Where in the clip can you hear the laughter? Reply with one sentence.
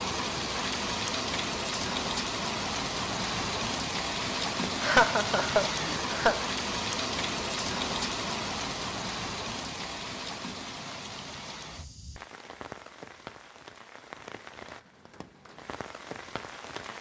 You can hear the laughter from 4.7 to 6.5 s.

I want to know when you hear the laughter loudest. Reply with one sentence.
The loudest moment of the laughter is at 5 seconds.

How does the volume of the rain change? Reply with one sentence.
The volume of the rain goes down.